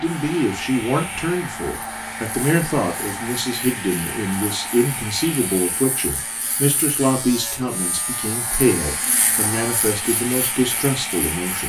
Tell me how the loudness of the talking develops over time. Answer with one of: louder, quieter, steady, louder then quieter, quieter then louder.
steady.